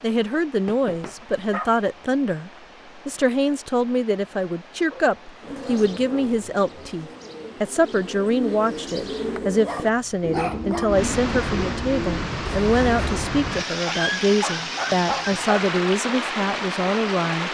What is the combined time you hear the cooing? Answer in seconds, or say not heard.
8 s.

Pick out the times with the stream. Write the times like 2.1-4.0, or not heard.
0.0-17.4.